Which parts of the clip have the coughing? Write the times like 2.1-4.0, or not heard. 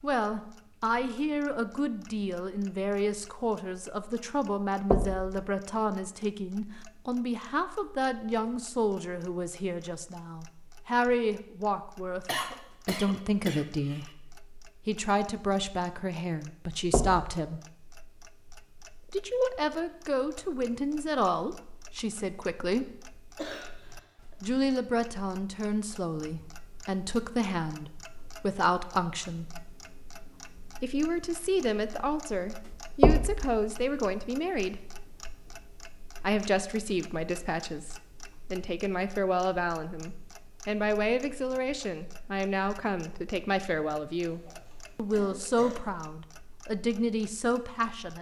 12.2-14.1, 23.4-24.4, 44.2-45.9.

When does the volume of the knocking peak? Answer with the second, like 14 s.
33 s.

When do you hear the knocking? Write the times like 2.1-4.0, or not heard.
4.9-5.5, 16.9-17.3, 33.0-33.6.